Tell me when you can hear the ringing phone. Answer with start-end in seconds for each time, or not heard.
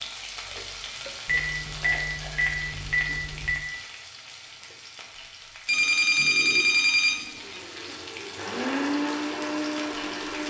1.2-3.6, 5.7-7.6.